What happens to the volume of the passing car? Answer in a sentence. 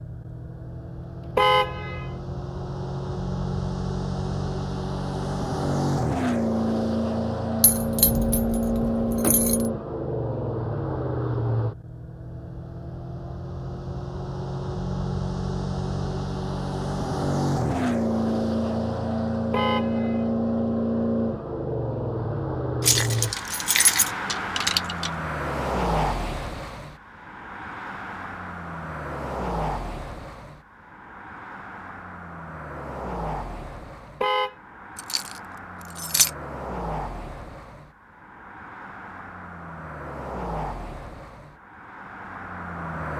The loudness of the passing car goes down.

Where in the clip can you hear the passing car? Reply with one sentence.
You can hear the passing car from 0.0 to 43.1 s.